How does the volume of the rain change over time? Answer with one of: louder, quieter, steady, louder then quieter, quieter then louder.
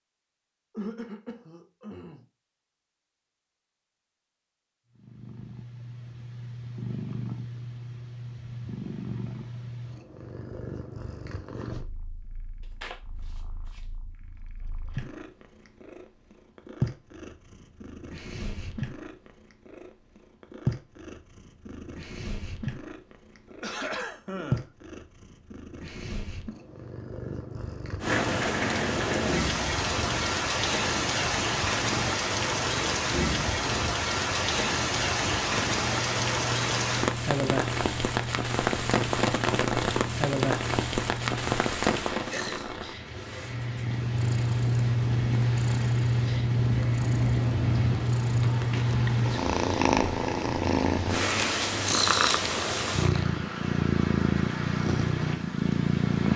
quieter.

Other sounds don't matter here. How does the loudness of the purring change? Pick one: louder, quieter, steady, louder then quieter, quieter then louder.
louder.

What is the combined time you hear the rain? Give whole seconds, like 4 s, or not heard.
28 s.